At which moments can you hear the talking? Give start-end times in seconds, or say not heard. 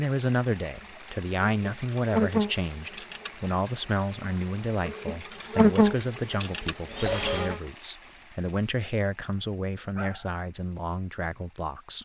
0.0-12.0.